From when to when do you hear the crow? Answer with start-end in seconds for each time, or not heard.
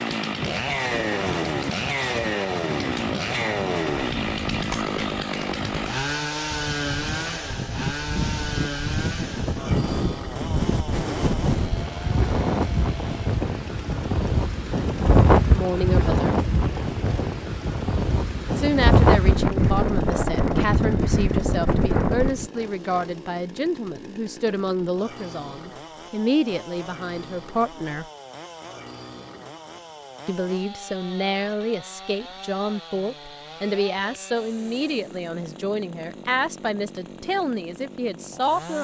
not heard.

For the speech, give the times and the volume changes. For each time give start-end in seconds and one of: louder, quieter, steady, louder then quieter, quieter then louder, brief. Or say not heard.
15.5-16.4 brief
18.6-28.1 steady
30.2-38.7 steady.